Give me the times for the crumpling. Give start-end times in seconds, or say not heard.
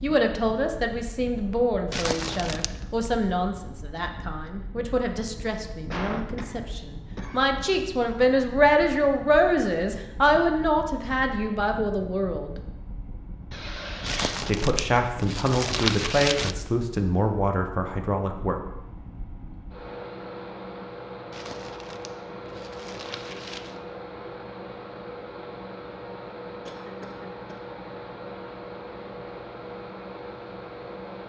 1.9-3.1, 14.1-16.6, 21.3-23.8.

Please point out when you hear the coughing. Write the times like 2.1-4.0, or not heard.
5.9-7.5, 13.5-14.4, 26.6-27.6.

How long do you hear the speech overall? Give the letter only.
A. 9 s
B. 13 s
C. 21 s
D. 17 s
D.